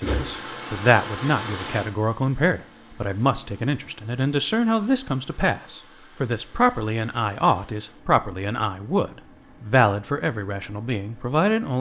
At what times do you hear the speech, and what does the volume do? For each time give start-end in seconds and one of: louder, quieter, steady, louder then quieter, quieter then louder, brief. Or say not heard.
0.0-11.7 steady.